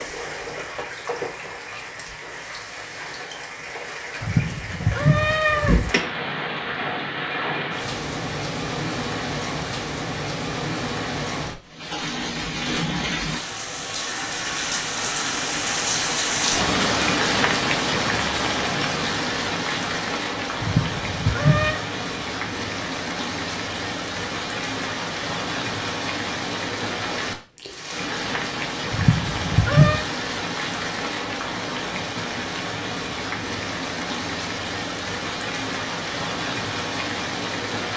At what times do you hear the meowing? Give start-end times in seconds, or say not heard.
4.2-5.8, 20.6-21.8, 28.9-30.1.